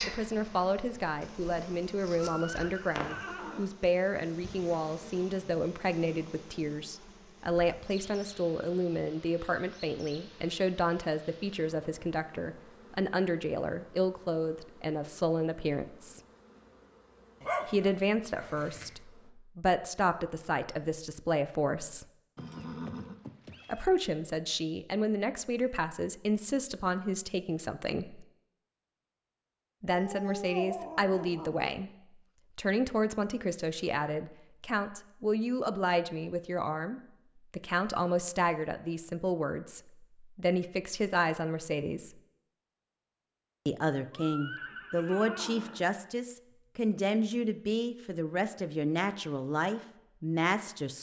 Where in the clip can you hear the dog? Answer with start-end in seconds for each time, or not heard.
17.4-19.1, 29.9-31.7.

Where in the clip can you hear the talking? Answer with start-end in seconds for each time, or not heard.
0.0-16.2, 17.6-22.1, 23.6-28.2, 29.8-31.9, 32.5-42.2, 43.6-50.9.